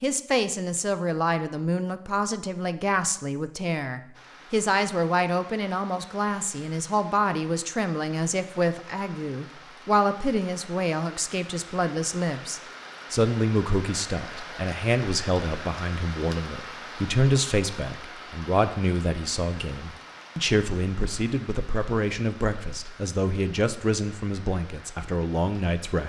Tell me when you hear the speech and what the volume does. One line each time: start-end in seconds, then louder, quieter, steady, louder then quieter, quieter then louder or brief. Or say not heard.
0.0-26.0 steady.